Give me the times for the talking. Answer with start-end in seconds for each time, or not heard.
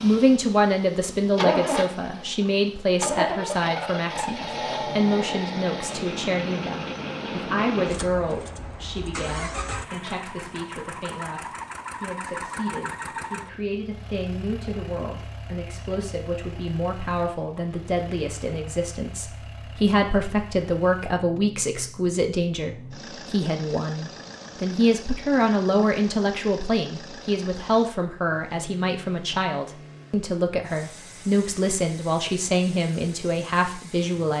0.0-34.3.